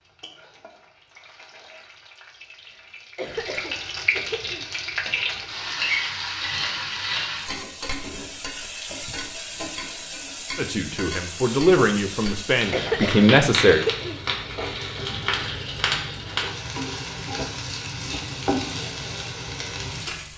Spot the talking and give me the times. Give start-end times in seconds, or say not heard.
10.6-13.8.